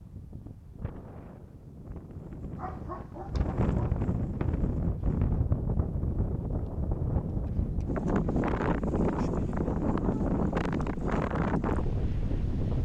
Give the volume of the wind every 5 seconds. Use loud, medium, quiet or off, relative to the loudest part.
medium, loud, loud.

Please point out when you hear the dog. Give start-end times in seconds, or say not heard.
2.5-4.0.